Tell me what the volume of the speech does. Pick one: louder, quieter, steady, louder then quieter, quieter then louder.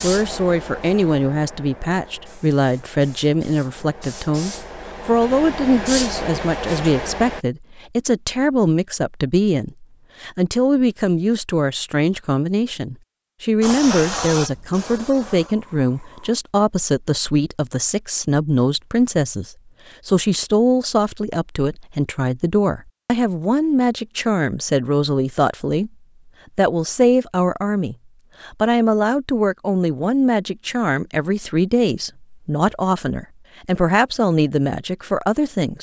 steady.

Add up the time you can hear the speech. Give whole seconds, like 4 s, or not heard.
35 s.